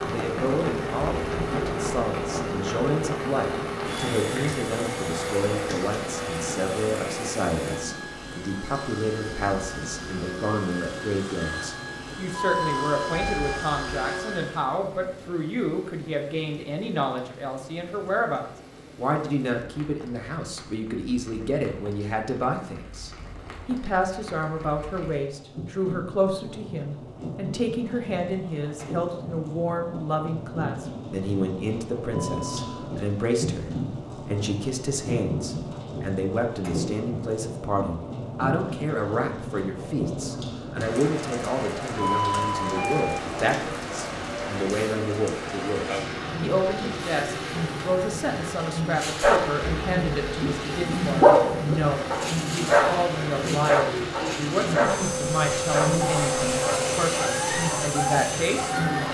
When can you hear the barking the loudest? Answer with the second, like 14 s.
51 s.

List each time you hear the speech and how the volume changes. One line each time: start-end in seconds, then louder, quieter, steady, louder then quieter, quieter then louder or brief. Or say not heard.
0.0-59.0 steady.